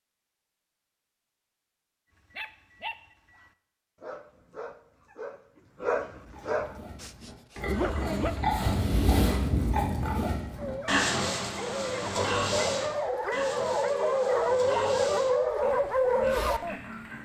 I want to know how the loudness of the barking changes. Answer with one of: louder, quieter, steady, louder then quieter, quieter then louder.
louder.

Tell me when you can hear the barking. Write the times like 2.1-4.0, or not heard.
2.1-8.3, 10.6-16.8.